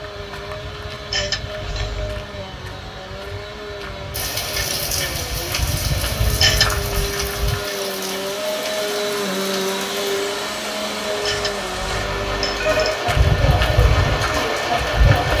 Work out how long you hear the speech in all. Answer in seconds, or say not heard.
not heard.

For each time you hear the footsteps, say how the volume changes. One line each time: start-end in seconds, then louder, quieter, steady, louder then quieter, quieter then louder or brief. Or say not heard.
0.0-7.7 louder
13.1-15.3 brief.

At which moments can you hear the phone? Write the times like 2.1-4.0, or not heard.
1.1-2.1, 6.3-7.1, 11.2-13.0.